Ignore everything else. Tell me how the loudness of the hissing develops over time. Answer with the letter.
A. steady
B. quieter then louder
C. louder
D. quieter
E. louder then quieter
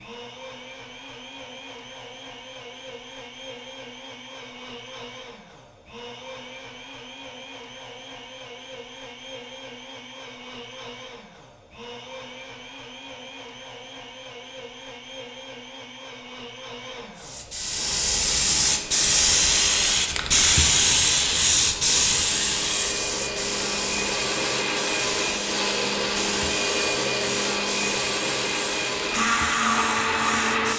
D.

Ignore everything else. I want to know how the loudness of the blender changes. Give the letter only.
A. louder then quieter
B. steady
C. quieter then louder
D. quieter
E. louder
E.